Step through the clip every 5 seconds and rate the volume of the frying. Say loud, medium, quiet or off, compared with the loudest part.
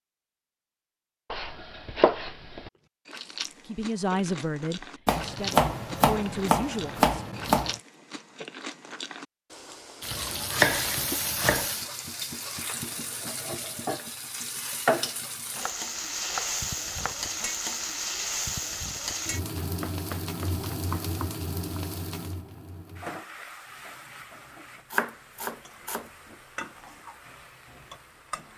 off, off, loud, loud, medium, quiet.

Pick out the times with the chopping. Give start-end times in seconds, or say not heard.
1.3-2.7, 5.0-7.8, 10.1-11.7, 15.5-17.1, 19.6-21.8, 24.9-26.1.